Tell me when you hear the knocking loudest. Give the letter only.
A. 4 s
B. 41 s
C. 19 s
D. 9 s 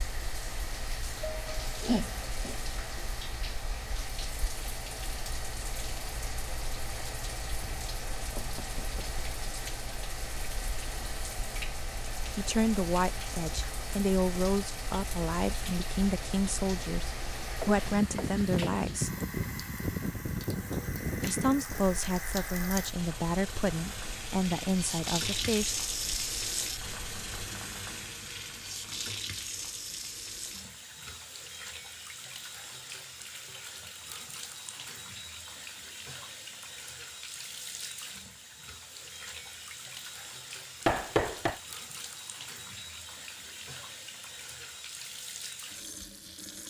B.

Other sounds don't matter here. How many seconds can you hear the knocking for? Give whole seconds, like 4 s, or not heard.
3 s.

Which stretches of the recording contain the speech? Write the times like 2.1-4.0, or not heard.
12.3-19.1, 21.2-25.8.